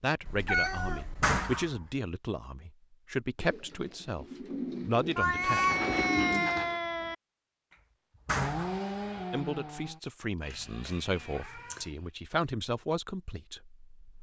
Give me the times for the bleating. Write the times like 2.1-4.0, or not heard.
not heard.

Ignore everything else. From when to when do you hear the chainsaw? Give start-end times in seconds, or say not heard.
8.3-12.2.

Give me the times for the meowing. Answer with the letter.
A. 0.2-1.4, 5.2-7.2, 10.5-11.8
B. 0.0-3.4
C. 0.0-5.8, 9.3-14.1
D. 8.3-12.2
A.